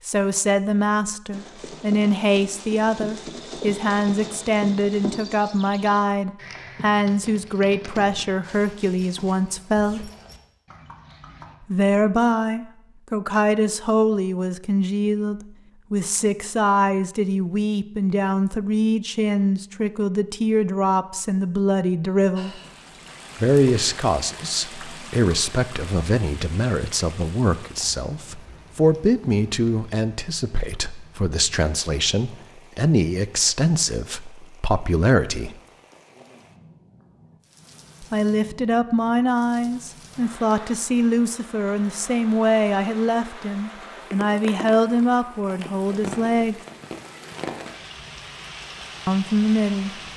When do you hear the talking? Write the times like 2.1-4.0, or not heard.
0.1-10.1, 11.6-22.6, 23.4-35.5, 38.0-46.6, 49.0-50.0.